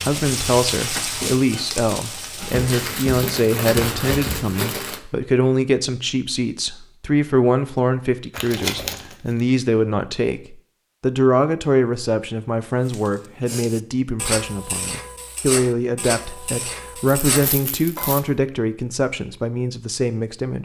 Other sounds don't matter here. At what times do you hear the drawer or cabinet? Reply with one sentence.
You can't hear the drawer or cabinet here.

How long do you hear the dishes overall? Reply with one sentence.
You can hear the dishes for 5 seconds altogether.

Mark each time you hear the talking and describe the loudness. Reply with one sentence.
The talking can be heard from 0.0 to 20.6 s, at a steady volume.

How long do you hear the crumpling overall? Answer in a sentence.
The crumpling can be heard for 5 seconds in total.